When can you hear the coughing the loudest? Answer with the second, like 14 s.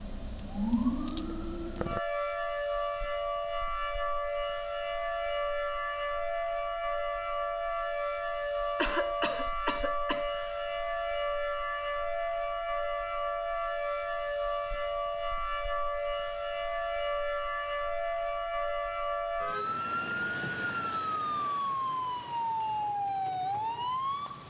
9 s.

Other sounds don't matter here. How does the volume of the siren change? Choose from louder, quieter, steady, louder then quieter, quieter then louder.
steady.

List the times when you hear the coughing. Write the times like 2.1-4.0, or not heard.
8.8-10.6.